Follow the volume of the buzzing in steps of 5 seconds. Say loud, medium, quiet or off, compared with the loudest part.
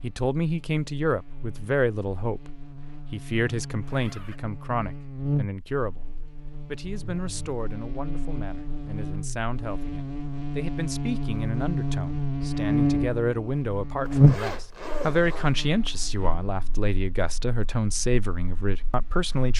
quiet, medium, loud, quiet.